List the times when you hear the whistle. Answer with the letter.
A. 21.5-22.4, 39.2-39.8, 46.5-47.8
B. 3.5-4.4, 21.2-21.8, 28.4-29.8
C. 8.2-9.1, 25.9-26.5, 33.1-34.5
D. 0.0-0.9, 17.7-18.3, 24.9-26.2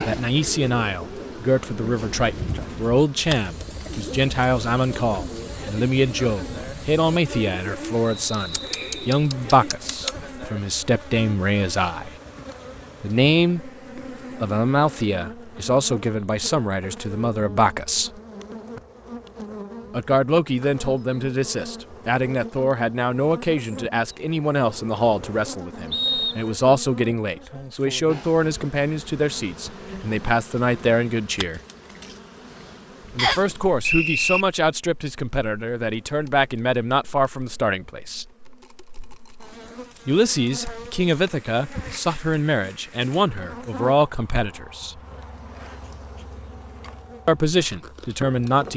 C.